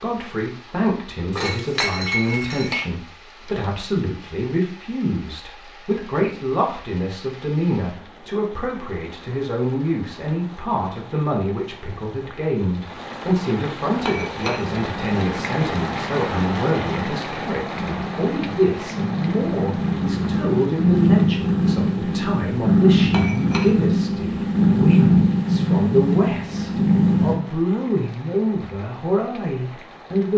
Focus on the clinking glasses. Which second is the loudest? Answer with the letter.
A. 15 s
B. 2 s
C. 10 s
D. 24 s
B.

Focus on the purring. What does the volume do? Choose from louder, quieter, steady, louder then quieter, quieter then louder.
louder.